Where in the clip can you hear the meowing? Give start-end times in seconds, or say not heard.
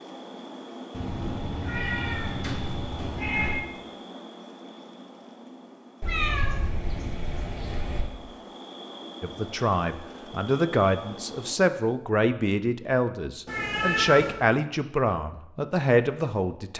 0.9-3.6, 6.0-8.1, 13.4-14.3.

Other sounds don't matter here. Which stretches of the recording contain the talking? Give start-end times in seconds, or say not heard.
9.2-16.7.